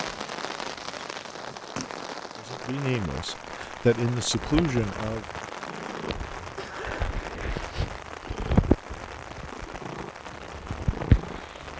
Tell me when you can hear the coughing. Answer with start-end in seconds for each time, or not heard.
6.5-7.2.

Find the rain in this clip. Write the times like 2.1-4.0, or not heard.
0.0-11.7.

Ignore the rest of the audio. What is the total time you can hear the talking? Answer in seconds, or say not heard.
3 s.